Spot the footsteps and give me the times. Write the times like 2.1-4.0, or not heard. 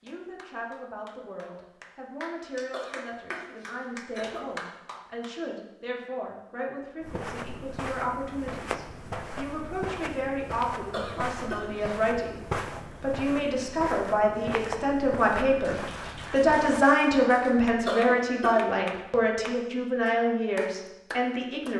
7.0-16.9.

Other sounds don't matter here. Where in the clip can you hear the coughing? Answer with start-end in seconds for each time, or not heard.
2.7-4.5, 10.9-12.0, 17.9-18.6.